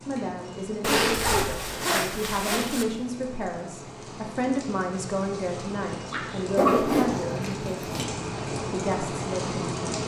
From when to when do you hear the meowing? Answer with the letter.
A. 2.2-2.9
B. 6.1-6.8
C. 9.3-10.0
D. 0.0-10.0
B.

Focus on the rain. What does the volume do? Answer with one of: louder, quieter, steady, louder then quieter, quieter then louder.
louder.